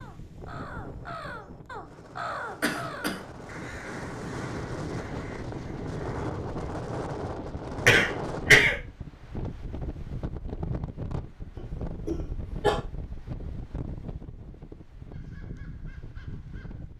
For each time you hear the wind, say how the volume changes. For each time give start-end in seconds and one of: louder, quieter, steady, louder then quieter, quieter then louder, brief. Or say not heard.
0.0-16.9 louder then quieter.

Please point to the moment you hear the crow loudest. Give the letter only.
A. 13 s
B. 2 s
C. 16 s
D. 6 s
B.